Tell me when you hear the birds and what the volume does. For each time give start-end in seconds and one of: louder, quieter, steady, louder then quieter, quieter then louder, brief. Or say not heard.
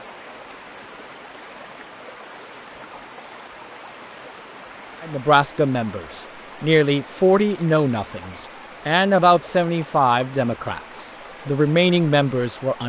not heard.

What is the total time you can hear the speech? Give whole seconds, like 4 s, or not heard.
8 s.